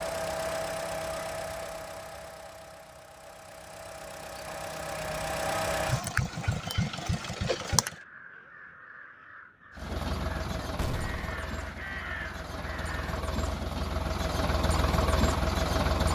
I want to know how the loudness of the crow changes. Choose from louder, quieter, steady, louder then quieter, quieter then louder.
louder.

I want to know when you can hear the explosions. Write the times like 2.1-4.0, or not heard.
10.8-11.3.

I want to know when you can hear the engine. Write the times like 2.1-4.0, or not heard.
0.0-8.0, 9.8-16.0.